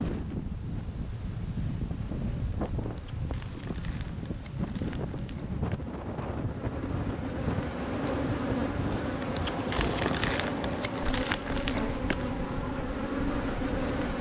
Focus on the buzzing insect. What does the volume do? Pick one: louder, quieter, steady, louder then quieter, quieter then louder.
louder.